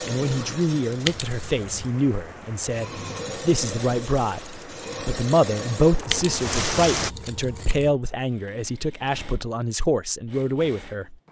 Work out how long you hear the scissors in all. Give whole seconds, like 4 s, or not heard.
3 s.